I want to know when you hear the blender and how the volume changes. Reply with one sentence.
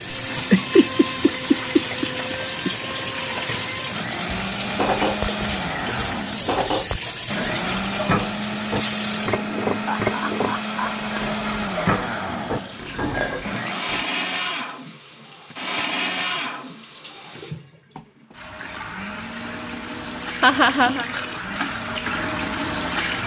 You can hear the blender from 0.0 to 23.2 s, getting quieter.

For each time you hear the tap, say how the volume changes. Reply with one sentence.
The tap can be heard from 0.0 to 23.2 s, getting quieter then louder.